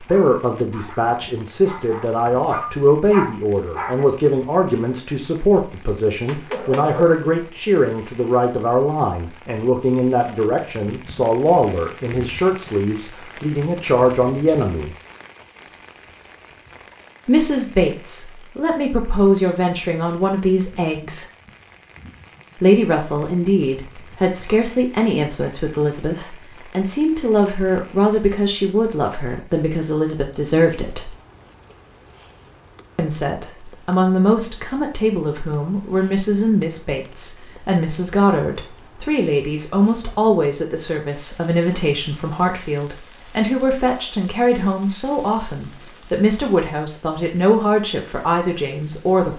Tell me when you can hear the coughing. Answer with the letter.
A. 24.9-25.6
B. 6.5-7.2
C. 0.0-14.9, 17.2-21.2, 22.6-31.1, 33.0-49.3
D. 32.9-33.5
B.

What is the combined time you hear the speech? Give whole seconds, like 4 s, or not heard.
44 s.